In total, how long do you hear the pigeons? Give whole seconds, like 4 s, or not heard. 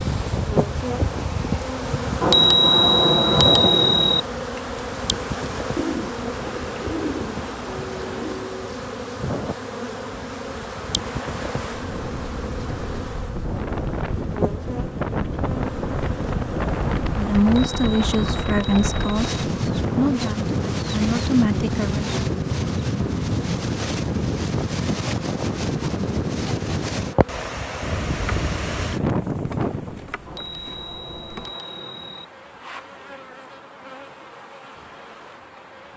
3 s.